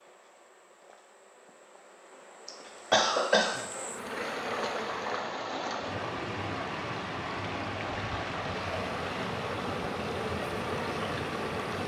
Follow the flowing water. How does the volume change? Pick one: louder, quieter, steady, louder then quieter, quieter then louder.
steady.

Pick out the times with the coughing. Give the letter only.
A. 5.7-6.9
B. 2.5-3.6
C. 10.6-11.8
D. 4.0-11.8
B.